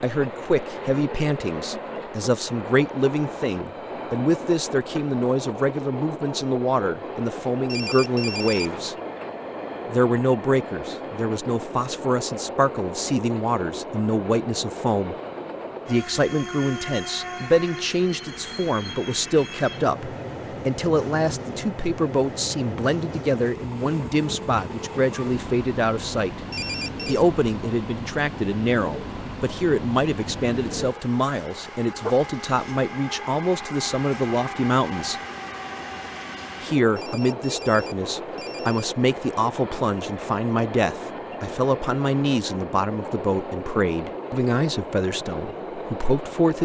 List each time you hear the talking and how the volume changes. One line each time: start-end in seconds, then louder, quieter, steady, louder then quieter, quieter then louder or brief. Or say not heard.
0.0-8.9 steady
9.9-15.2 steady
15.8-26.4 steady
27.1-35.2 steady
36.6-46.6 steady.